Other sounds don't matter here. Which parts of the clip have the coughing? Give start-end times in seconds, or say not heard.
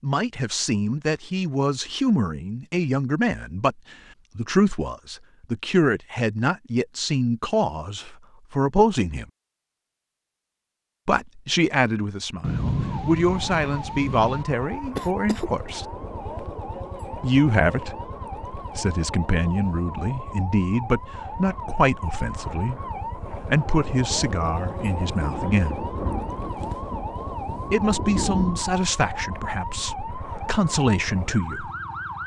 14.9-15.7.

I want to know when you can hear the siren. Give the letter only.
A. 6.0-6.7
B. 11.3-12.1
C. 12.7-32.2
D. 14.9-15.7
C.